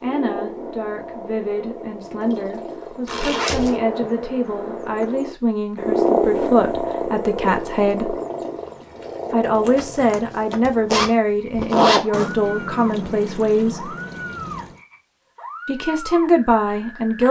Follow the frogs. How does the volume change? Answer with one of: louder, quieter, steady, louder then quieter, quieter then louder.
louder then quieter.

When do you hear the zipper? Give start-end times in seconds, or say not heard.
3.0-3.8, 9.4-12.0.